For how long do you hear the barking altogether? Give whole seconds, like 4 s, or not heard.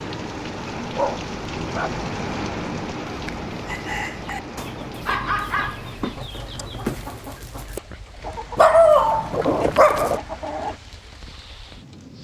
4 s.